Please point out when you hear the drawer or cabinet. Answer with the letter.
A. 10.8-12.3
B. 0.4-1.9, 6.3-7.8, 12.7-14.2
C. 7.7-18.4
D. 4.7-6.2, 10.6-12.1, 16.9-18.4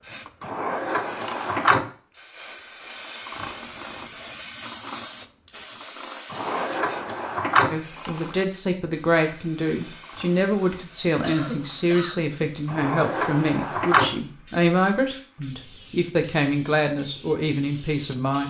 B.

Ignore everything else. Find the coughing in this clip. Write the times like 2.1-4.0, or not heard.
10.8-12.3.